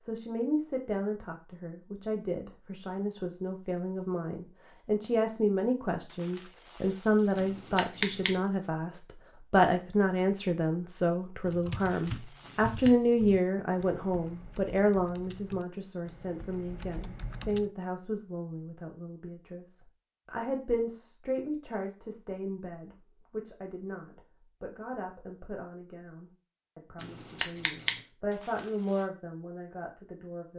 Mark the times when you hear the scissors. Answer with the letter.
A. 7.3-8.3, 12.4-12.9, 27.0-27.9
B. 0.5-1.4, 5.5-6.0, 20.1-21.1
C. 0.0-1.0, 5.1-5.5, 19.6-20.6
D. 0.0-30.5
A.